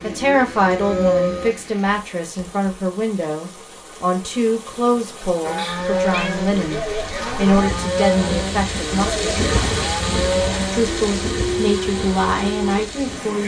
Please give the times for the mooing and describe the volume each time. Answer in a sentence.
The mooing can be heard briefly from 0.0 to 1.7 s; and from 5.4 to 13.4 s, at a steady volume.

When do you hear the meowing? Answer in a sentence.
You can hear the meowing from 5.5 to 6.4 s.